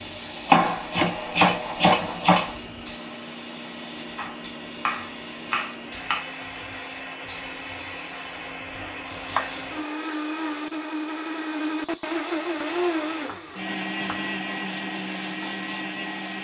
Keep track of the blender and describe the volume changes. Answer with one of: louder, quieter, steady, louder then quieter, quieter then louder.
louder.